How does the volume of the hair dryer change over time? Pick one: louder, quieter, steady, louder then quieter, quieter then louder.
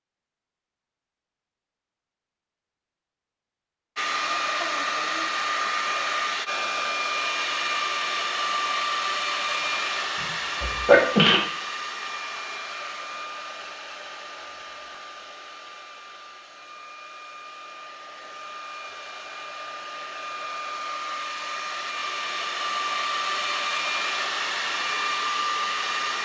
quieter then louder.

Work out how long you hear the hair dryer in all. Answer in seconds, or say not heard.
22 s.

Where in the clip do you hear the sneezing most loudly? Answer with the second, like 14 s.
11 s.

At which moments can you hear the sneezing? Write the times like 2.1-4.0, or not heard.
9.4-9.8, 10.6-11.4.